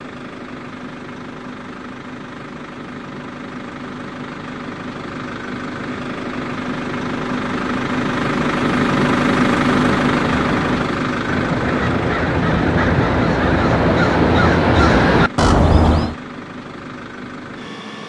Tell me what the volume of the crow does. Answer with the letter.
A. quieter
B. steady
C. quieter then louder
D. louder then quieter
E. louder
E.